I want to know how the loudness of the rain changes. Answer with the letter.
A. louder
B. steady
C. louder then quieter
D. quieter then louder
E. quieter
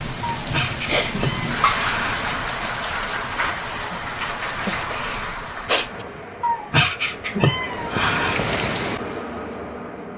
D.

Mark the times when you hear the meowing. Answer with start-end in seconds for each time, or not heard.
0.2-2.1, 6.4-8.4.